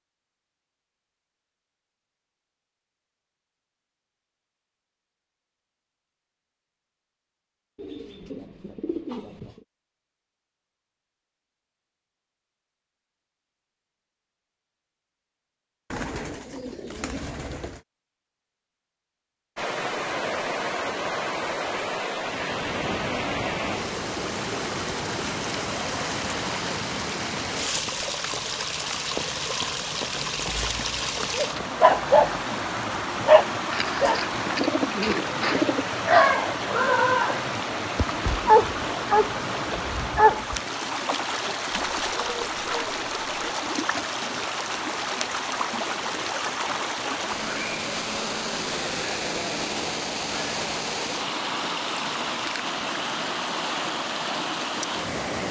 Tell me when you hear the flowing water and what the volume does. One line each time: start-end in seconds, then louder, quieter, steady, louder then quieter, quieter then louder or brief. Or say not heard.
19.6-55.4 steady.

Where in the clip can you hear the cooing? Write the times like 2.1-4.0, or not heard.
7.8-9.7, 15.9-17.8, 33.7-36.0, 41.9-43.5.